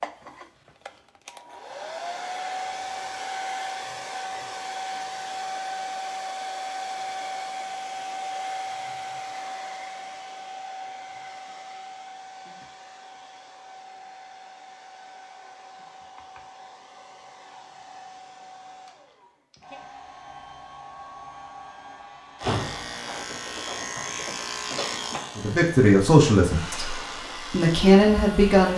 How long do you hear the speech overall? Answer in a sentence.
You can hear the speech for 3 seconds altogether.